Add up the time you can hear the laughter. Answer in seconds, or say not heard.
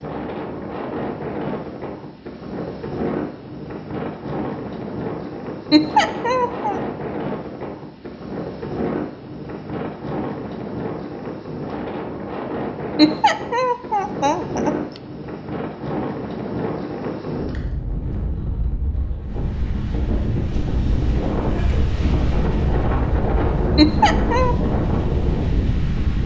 4 s.